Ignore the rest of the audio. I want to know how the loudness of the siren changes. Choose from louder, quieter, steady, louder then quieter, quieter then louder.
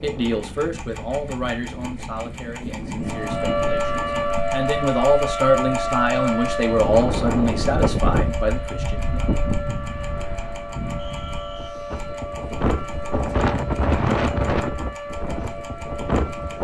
quieter.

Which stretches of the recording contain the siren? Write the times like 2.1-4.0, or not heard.
3.0-16.5.